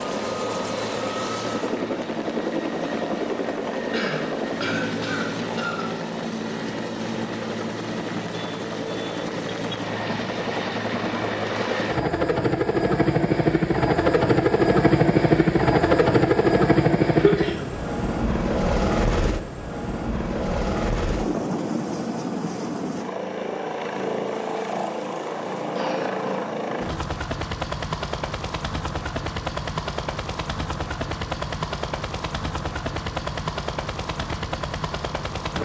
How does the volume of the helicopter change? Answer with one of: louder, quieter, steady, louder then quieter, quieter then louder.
louder then quieter.